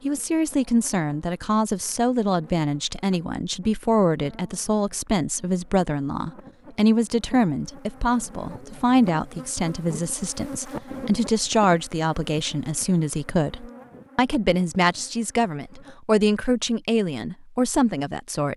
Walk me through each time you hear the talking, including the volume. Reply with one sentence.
The talking can be heard from 0.0 to 18.5 s, at a steady volume.